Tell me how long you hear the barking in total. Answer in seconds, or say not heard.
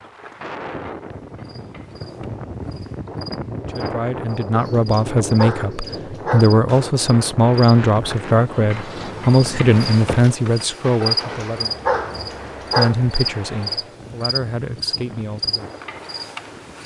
4 s.